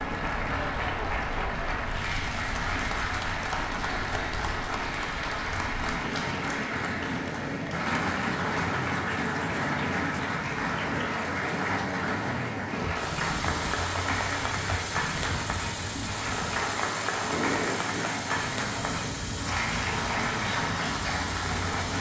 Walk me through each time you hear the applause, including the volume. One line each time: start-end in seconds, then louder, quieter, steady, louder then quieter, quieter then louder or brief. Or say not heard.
0.0-21.9 steady.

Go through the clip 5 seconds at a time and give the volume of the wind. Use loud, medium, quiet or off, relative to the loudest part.
medium, loud, loud, loud, loud.